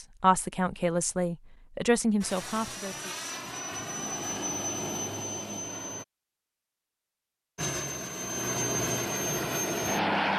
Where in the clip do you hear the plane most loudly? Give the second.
10 s.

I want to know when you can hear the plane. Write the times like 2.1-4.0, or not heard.
2.2-6.0, 7.5-10.3.